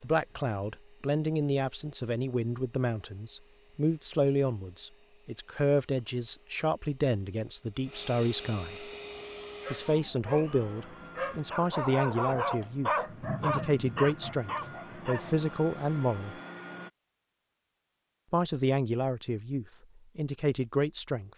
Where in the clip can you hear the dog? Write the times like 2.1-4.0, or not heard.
8.9-15.4.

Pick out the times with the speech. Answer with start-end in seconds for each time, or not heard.
0.0-8.8, 9.7-16.4, 18.3-21.3.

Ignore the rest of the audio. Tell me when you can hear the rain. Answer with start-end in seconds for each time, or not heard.
not heard.